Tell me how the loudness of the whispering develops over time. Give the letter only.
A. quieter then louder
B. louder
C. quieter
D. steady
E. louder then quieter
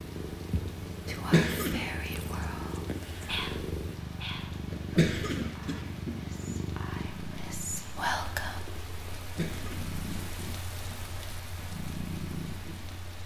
A.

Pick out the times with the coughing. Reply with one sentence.
You can hear the coughing from 1.1 to 1.9 s, from 4.7 to 6.6 s and from 9.2 to 11.0 s.